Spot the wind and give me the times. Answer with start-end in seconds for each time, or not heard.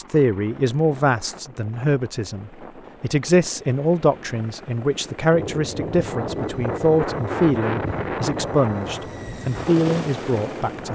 5.3-10.9.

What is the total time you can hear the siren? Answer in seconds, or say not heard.
not heard.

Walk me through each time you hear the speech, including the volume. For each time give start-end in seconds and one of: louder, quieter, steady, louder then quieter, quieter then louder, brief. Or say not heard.
0.0-10.9 steady.